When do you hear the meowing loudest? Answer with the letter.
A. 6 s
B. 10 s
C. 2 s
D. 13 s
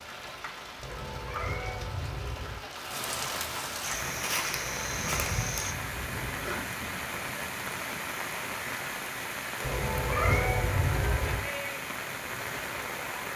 B.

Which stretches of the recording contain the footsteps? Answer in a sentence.
The footsteps can be heard from 3.8 to 5.8 s.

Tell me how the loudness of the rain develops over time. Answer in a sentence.
The loudness of the rain goes up.